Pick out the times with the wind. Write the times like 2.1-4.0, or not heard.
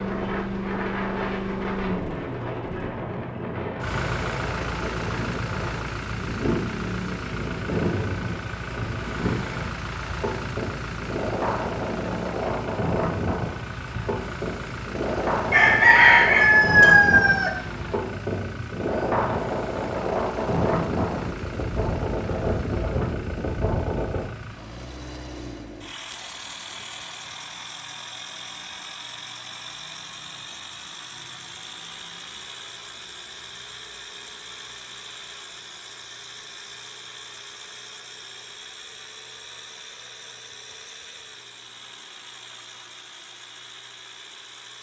0.0-24.2.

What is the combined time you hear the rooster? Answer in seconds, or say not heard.
2 s.